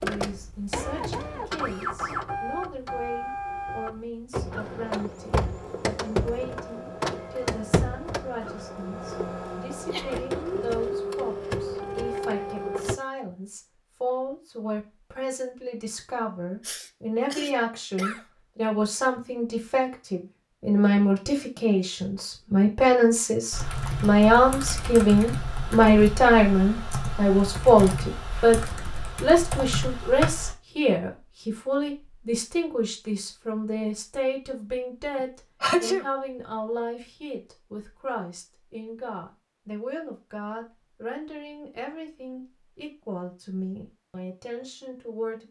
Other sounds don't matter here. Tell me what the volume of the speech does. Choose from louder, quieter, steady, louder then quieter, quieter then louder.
louder then quieter.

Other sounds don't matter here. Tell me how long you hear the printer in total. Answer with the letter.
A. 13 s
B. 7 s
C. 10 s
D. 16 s
A.